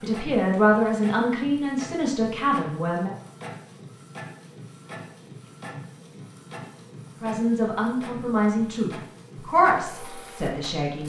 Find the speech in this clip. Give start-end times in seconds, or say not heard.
0.0-3.1, 7.2-11.0.